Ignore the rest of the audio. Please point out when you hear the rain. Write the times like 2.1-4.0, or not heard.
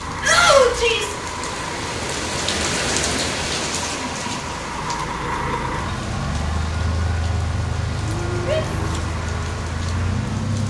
0.0-10.6.